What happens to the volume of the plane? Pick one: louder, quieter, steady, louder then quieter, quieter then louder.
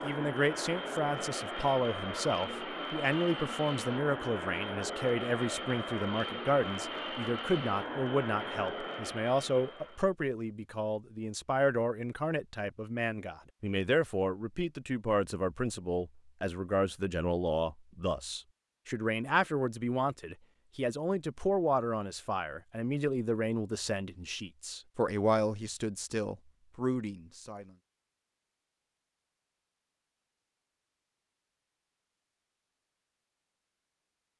steady.